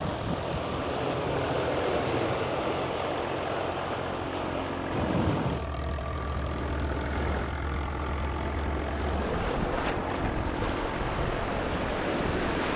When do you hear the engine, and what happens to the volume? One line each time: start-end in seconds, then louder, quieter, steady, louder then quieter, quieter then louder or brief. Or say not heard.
0.0-12.6 steady.